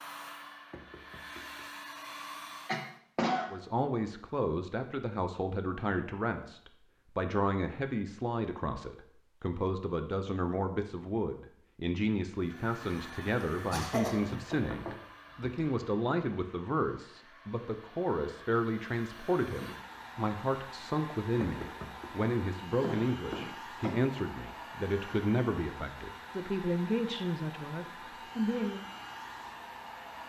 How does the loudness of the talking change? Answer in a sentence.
The volume of the talking stays about the same.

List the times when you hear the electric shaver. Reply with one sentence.
You can't hear the electric shaver here.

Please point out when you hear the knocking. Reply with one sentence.
You can hear the knocking from 0.7 to 1.6 s, from 14.5 to 15.7 s and from 21.4 to 22.1 s.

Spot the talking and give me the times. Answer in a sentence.
You can hear the talking from 3.5 to 28.9 s.